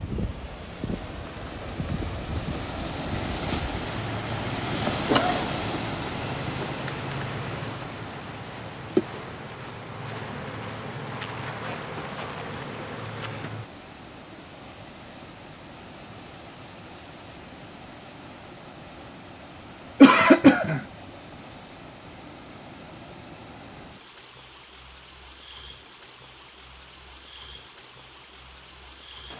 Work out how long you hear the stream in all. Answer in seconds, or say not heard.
29 s.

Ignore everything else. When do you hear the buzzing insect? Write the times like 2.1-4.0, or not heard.
0.0-13.7.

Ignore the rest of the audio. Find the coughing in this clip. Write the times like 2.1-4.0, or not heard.
5.0-5.6, 20.0-20.8.